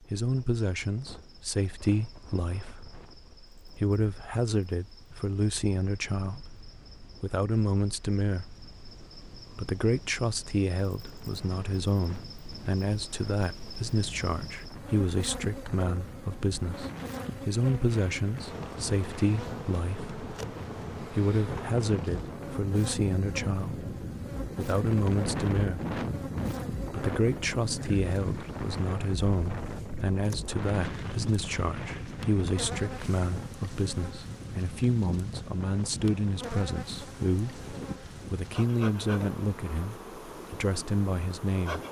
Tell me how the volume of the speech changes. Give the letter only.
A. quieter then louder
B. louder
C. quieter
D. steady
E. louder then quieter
D.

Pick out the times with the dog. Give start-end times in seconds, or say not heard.
not heard.